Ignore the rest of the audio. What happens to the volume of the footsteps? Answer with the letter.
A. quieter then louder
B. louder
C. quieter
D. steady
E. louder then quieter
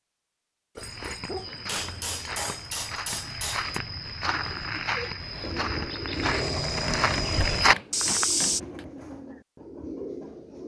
B.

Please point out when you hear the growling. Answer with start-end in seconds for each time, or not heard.
0.8-2.5, 6.1-7.7.